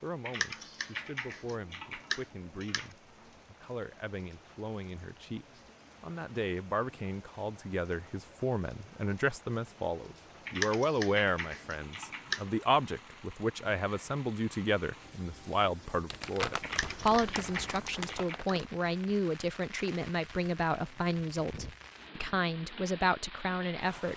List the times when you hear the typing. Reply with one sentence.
You can hear the typing from 0.2 to 2.9 s, from 10.4 to 12.4 s and from 16.6 to 18.6 s.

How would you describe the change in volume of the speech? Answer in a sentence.
The loudness of the speech goes up.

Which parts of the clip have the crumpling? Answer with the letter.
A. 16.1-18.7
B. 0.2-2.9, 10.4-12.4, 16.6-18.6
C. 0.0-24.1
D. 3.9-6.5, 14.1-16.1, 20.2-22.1
A.